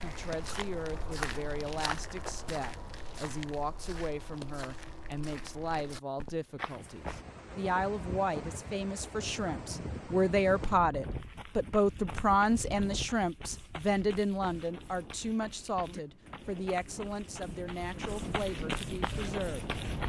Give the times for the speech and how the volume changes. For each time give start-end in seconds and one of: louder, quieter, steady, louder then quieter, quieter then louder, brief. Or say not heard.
0.0-19.8 louder then quieter.